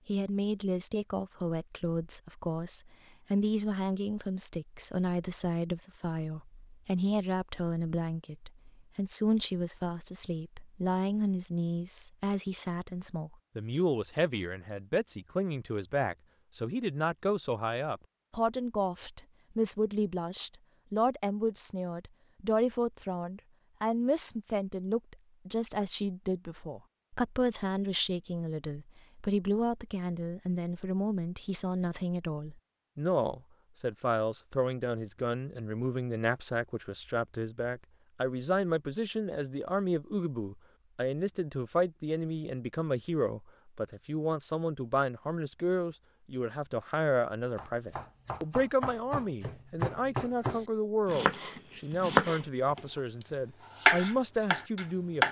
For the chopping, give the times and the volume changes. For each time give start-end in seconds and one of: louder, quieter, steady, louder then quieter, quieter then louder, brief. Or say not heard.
47.5-52.8 louder
53.8-55.2 brief.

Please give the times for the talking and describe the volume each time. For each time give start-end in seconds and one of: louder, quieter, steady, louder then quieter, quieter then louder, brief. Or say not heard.
0.1-55.2 steady.